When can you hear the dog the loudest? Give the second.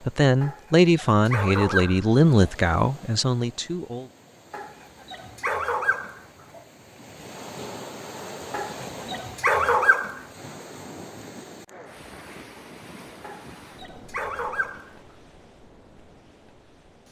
10 s.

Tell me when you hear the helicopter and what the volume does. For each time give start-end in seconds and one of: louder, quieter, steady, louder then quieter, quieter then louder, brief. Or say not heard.
not heard.